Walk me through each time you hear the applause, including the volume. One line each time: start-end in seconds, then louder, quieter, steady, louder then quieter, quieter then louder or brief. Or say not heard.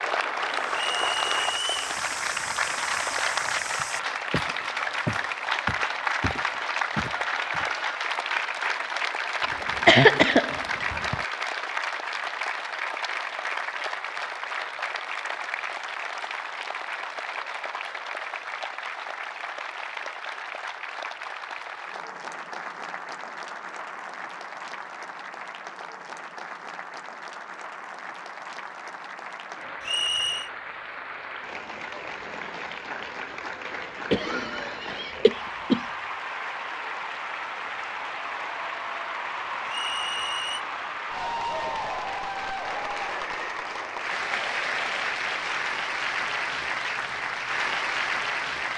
0.0-48.7 quieter then louder.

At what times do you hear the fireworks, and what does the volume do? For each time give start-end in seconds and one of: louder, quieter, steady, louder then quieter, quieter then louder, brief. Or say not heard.
not heard.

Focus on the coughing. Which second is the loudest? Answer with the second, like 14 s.
10 s.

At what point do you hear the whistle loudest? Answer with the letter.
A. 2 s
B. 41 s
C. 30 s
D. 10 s
C.